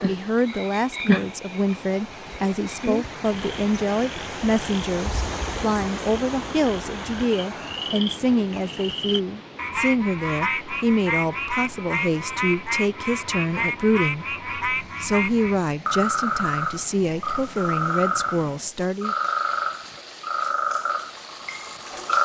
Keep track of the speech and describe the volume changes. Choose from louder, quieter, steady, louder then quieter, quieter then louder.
steady.